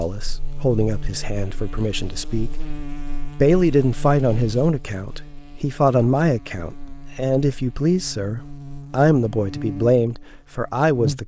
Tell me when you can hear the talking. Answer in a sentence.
The talking can be heard from 0.0 to 2.6 s and from 3.4 to 11.2 s.